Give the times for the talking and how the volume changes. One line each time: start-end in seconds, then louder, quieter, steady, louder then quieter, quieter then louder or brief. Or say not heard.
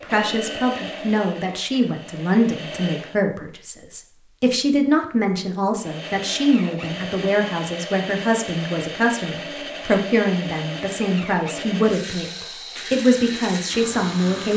0.0-14.5 steady.